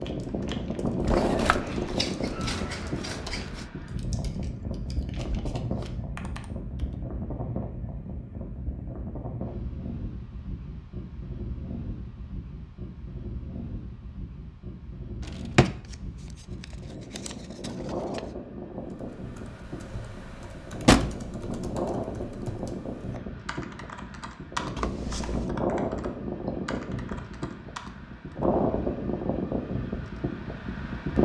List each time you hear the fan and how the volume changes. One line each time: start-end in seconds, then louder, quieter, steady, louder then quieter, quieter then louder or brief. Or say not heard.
0.0-31.2 quieter then louder.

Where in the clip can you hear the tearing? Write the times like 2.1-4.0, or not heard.
not heard.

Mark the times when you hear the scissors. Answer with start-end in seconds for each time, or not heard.
1.1-3.7, 15.8-18.3, 24.8-25.5.